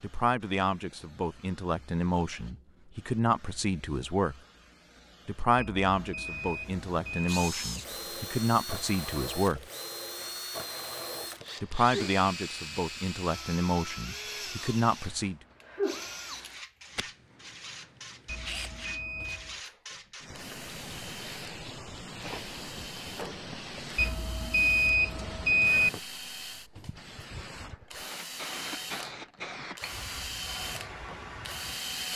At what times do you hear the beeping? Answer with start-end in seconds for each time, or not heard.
5.5-7.5, 18.2-19.6, 23.9-25.9.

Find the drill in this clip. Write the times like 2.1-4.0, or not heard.
6.8-32.1.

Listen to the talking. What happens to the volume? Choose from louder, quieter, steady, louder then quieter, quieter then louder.
steady.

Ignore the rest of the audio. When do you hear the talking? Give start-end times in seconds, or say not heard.
0.0-4.3, 5.2-9.7, 11.6-15.4.